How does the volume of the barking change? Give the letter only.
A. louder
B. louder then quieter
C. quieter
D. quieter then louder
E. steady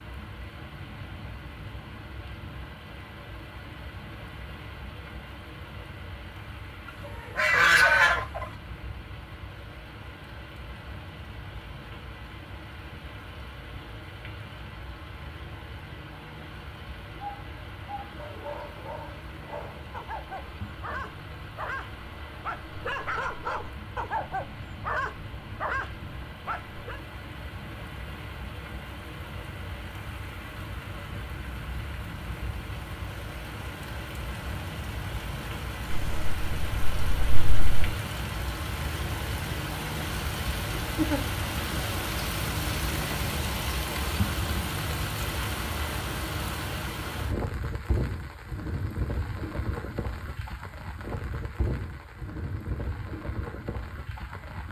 A.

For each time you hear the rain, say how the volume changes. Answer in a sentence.
You can hear the rain from 0.0 to 54.6 s, getting louder.